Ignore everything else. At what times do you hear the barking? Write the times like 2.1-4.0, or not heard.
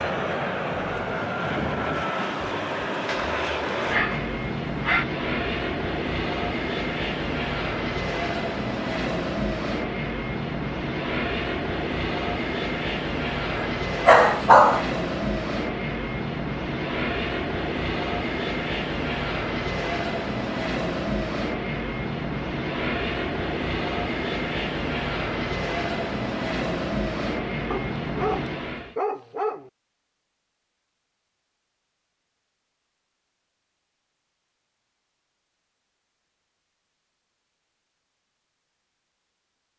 3.0-5.0, 13.6-14.9, 27.7-29.7.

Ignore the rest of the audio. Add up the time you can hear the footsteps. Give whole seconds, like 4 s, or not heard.
not heard.